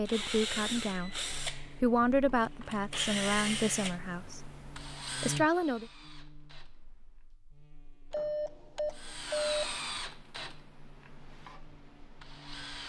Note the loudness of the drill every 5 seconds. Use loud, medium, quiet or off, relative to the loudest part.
loud, loud, medium.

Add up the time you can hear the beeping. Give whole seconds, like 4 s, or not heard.
2 s.